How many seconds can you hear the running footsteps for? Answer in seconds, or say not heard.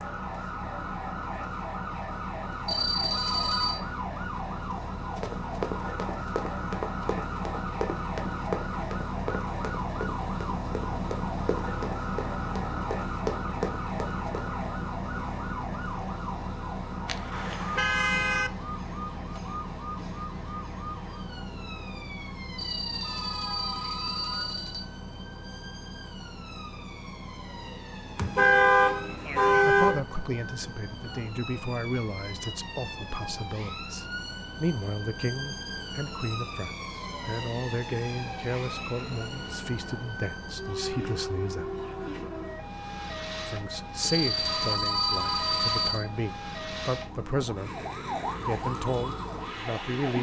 9 s.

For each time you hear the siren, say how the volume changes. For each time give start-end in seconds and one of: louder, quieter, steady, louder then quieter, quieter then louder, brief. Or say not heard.
0.0-50.1 quieter then louder.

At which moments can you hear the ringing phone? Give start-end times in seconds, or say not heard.
2.6-3.8, 22.6-24.9, 44.0-46.0.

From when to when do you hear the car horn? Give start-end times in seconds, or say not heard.
17.1-18.5, 28.1-30.0.